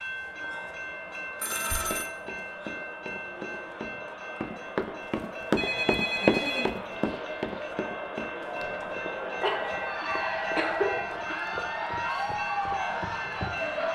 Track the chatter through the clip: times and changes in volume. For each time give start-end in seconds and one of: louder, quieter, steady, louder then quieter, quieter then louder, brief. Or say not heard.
0.0-13.9 louder.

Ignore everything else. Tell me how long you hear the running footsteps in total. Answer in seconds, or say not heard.
12 s.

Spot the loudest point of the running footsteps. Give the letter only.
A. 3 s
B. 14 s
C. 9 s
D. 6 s
D.